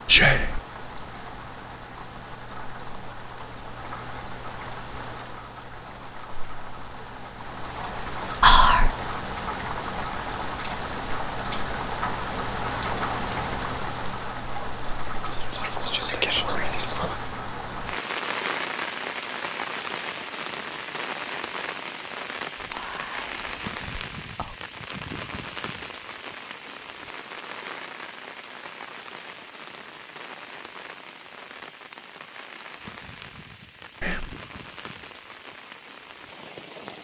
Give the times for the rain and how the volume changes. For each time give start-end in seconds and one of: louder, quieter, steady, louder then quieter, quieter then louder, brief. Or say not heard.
0.0-37.0 louder then quieter.